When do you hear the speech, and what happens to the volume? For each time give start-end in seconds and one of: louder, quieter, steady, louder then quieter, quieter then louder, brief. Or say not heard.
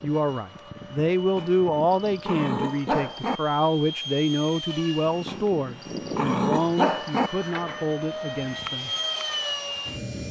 0.0-8.9 quieter.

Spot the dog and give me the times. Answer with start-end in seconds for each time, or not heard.
1.4-3.4, 5.2-7.3.